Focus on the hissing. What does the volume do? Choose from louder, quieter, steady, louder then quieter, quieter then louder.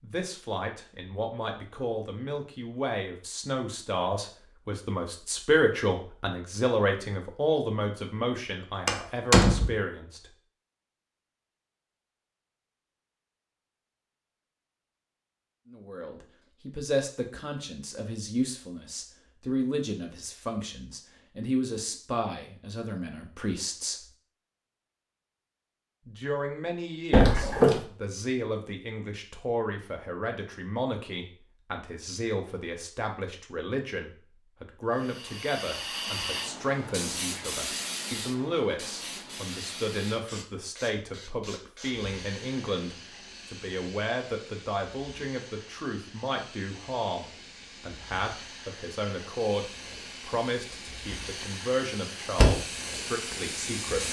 quieter then louder.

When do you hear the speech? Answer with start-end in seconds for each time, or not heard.
0.0-10.3, 15.7-24.1, 26.1-54.0.